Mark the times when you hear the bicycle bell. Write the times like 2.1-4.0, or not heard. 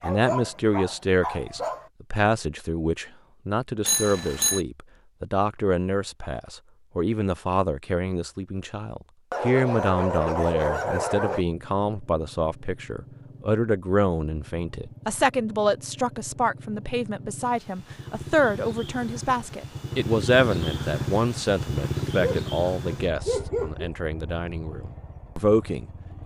3.9-4.6.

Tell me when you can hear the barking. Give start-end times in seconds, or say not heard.
0.0-1.9, 9.3-11.4, 22.2-23.9.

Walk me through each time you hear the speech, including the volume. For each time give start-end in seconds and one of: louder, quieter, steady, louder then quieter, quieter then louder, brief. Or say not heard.
0.0-26.2 steady.